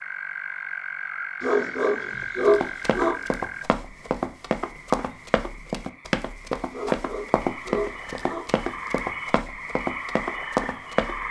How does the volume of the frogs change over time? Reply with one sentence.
The loudness of the frogs goes down, then up.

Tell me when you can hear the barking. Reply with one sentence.
The barking can be heard from 1.4 to 3.1 s and from 6.7 to 8.4 s.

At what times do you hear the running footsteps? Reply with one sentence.
You can hear the running footsteps from 2.2 to 11.2 s.